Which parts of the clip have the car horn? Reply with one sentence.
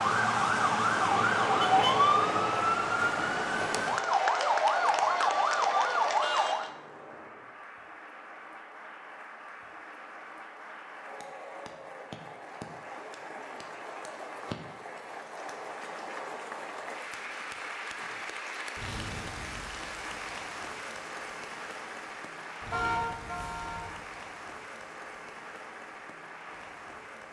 The car horn can be heard from 1.6 to 2.0 s and from 22.7 to 23.9 s.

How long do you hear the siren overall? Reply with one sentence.
You can hear the siren for 7 seconds altogether.